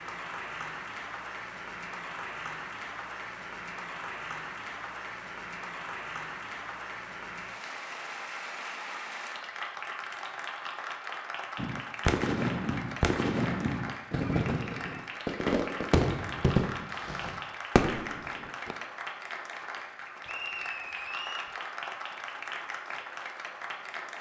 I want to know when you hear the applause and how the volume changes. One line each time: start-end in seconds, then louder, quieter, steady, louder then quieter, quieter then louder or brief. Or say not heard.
0.0-24.1 steady.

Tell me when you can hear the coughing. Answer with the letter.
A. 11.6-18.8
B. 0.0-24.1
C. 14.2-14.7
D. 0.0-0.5
C.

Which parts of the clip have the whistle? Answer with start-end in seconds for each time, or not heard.
20.2-21.6.